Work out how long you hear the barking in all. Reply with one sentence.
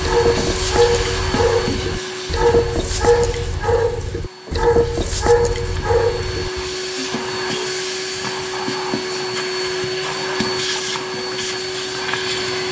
The barking can be heard for 7 seconds in total.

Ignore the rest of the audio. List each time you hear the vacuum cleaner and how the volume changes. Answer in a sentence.
The vacuum cleaner can be heard from 0.0 to 12.6 s, getting quieter then louder.